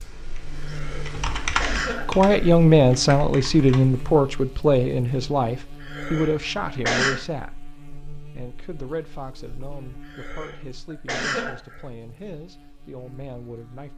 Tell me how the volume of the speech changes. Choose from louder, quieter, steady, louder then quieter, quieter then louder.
quieter.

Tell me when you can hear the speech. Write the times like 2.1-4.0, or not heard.
2.0-13.9.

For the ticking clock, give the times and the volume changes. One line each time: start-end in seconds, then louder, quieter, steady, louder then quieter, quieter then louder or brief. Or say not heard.
not heard.